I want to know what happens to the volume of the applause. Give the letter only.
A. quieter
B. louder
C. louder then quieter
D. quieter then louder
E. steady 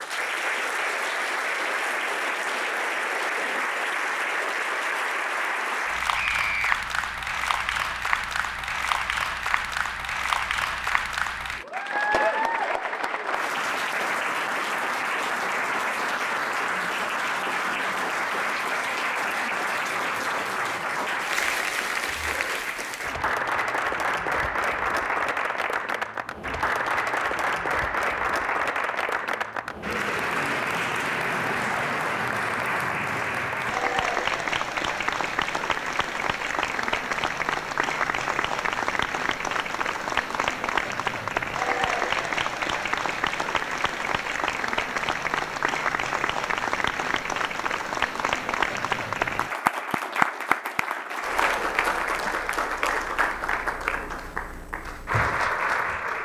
E.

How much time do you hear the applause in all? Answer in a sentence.
The applause can be heard for 56 seconds in total.